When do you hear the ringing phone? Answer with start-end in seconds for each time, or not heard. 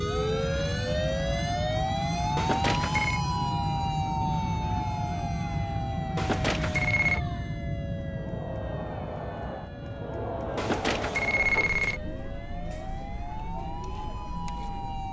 2.4-3.2, 6.2-7.2, 10.6-12.0.